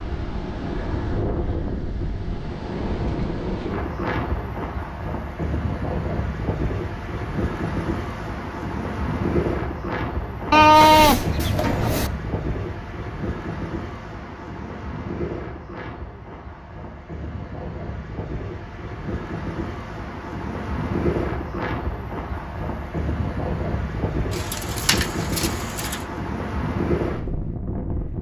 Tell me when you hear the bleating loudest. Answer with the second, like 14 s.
11 s.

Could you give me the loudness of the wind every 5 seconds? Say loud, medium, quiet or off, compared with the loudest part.
loud, loud, loud, medium, loud, loud.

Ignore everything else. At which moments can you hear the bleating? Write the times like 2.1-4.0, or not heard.
10.5-12.1, 24.3-26.0.